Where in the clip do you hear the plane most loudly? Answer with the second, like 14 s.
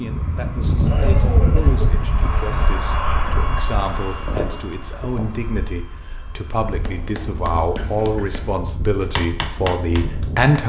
1 s.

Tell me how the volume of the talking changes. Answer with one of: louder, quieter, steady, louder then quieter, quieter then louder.
louder.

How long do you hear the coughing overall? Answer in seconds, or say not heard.
2 s.